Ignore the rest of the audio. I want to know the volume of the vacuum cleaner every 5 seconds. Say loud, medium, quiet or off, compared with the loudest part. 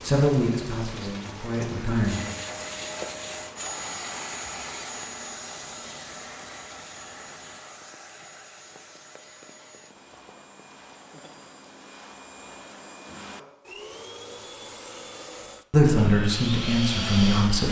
loud, medium, medium, loud.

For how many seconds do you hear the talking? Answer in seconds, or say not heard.
4 s.